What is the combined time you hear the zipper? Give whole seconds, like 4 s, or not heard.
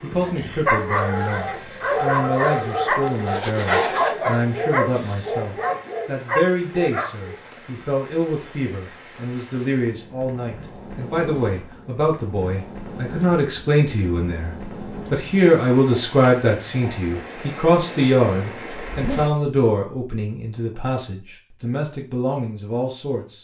2 s.